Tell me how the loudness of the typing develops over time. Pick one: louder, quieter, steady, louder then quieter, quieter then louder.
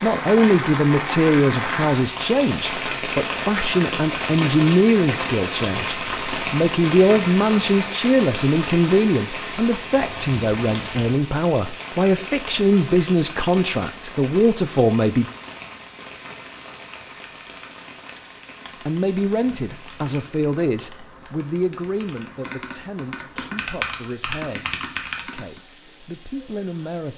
louder.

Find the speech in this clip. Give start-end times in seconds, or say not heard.
0.0-15.2, 18.9-27.1.